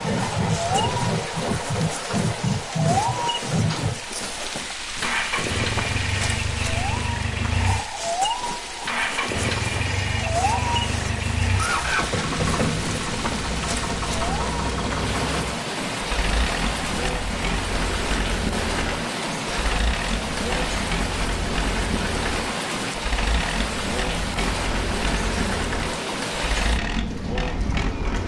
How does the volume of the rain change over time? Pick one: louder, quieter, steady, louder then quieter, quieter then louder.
steady.